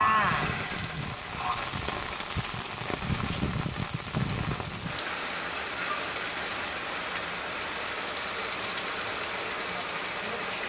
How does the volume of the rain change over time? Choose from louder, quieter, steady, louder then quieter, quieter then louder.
steady.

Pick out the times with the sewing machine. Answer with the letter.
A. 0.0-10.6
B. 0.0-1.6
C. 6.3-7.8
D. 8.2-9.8
B.